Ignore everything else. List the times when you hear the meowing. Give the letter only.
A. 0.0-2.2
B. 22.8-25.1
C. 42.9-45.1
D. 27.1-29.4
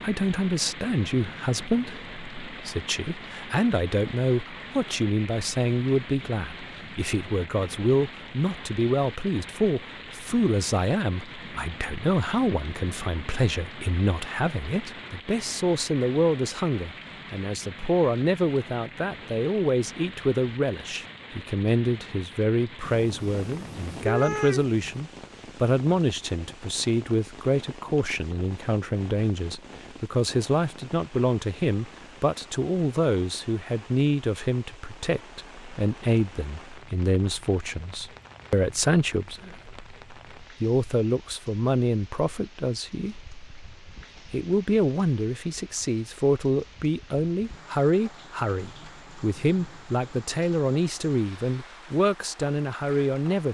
B.